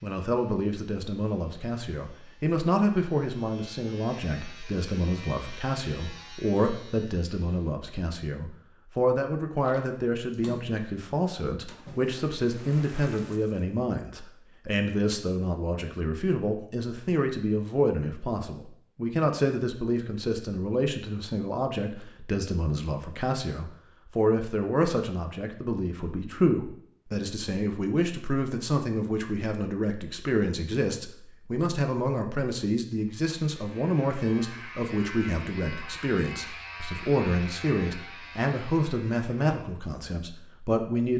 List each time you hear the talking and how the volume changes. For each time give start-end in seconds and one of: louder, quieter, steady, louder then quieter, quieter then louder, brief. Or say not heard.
0.0-41.1 steady.